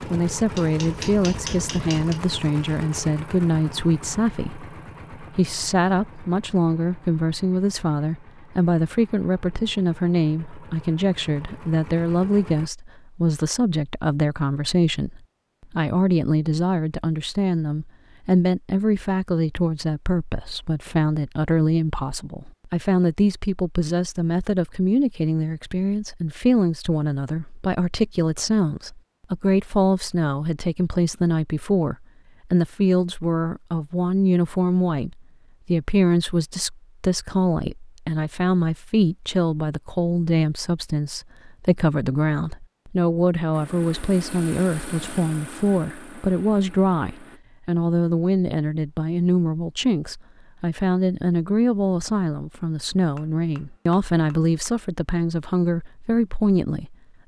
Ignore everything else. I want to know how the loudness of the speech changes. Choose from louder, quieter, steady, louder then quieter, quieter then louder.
steady.